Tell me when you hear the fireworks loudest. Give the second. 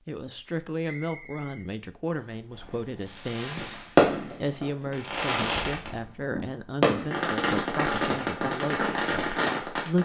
4 s.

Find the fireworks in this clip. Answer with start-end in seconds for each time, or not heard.
2.5-10.0.